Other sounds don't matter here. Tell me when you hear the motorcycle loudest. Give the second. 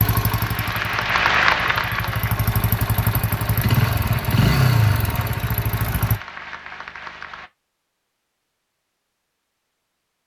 4 s.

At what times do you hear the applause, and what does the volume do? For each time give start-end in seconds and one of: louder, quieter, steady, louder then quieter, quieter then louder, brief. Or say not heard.
0.0-7.5 quieter.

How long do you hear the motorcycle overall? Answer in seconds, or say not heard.
6 s.